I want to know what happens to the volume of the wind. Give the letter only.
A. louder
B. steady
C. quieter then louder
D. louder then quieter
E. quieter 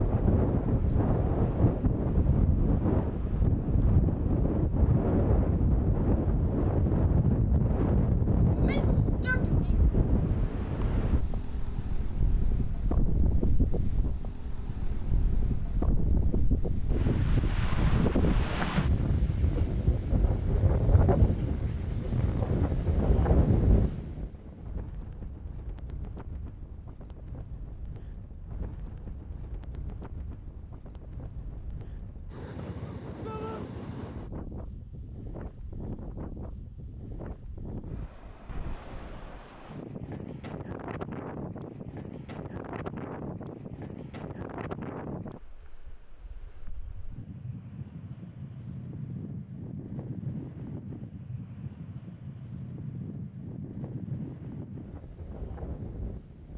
E.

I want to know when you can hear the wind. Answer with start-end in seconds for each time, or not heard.
0.0-56.5.